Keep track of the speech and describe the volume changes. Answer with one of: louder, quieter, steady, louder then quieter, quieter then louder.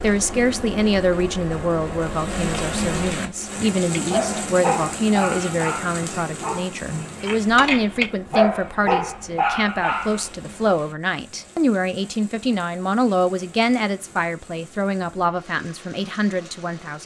steady.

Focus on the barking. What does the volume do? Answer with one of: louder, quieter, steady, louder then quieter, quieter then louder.
quieter then louder.